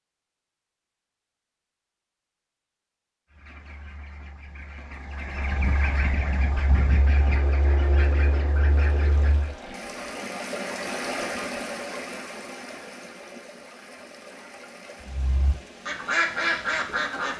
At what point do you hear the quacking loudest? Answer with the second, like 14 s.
16 s.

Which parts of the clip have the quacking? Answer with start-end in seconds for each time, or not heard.
3.3-9.6, 15.1-17.3.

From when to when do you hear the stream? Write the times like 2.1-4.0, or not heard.
8.7-17.3.